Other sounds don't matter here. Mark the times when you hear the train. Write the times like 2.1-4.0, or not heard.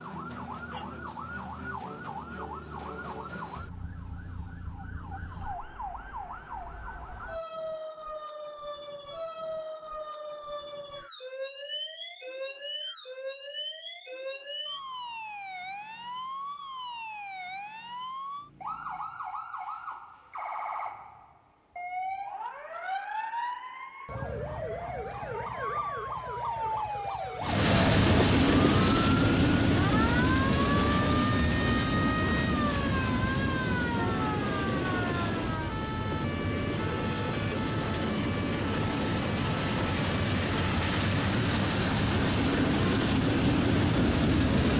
27.4-44.7.